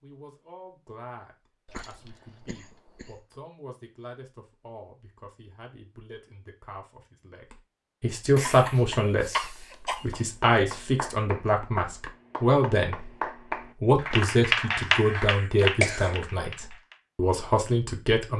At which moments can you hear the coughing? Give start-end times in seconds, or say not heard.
1.6-3.2, 8.3-10.1, 15.6-16.1.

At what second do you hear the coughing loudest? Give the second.
16 s.